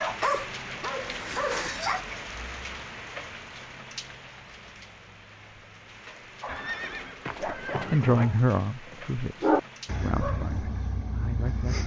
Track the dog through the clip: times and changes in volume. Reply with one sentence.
The dog can be heard briefly from 0.0 to 2.0 s; and from 6.4 to 11.8 s, getting louder then quieter.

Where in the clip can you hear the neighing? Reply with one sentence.
The neighing can be heard from 6.5 to 8.3 s.